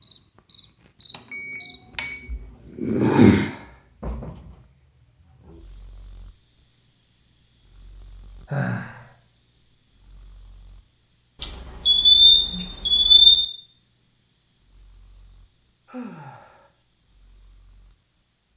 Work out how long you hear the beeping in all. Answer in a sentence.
The beeping can be heard for 4 seconds in total.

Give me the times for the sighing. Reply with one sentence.
You can hear the sighing from 3.0 to 3.8 s, from 8.4 to 9.1 s and from 15.8 to 16.7 s.